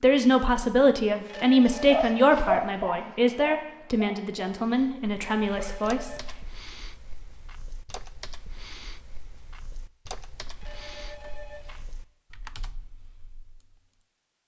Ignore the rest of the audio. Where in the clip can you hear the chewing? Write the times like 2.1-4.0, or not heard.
not heard.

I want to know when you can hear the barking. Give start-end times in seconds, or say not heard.
1.6-5.8.